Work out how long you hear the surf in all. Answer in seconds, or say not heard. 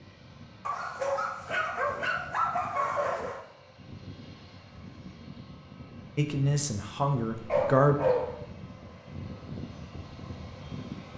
not heard.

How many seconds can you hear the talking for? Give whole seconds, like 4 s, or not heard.
2 s.